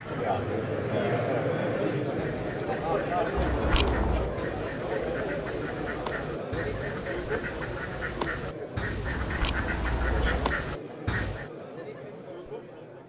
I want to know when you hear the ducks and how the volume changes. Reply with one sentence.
The ducks can be heard from 0.0 to 11.5 s, getting louder.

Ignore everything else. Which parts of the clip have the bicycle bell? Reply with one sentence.
You can hear the bicycle bell from 3.4 to 4.3 s and from 9.1 to 10.6 s.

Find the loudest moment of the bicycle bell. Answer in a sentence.
The volume of the bicycle bell peaks at 4 seconds.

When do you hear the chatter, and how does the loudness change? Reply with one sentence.
You can hear the chatter from 0.0 to 13.0 s, getting quieter.